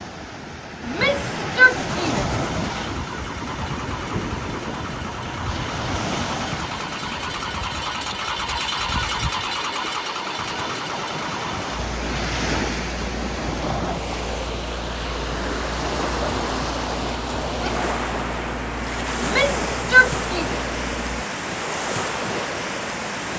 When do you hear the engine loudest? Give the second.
9 s.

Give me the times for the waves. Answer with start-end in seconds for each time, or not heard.
0.0-23.3.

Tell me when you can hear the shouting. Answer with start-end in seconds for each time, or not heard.
0.8-2.5, 19.2-20.5.